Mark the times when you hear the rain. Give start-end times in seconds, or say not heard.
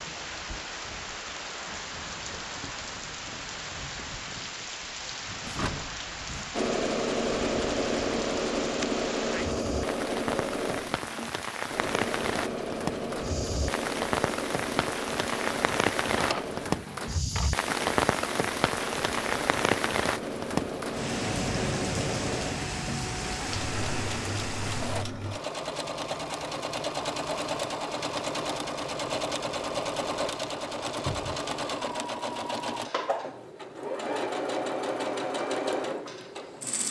0.0-25.1.